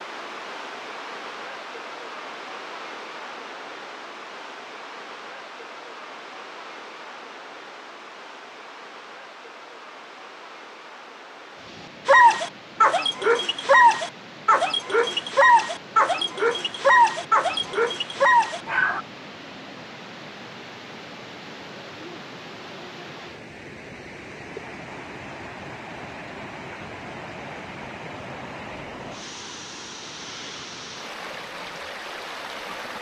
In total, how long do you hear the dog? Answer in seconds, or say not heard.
7 s.